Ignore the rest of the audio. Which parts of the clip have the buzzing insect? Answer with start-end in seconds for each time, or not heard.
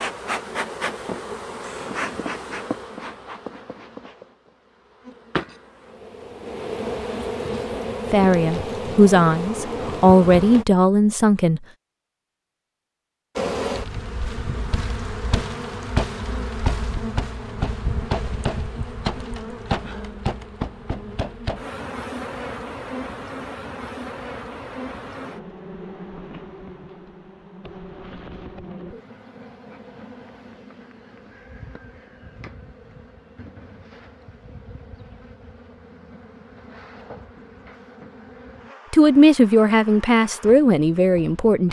0.0-10.7, 13.3-41.6.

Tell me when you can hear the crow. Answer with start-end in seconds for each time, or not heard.
not heard.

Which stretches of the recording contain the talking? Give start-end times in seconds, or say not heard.
8.1-11.6, 38.9-41.6.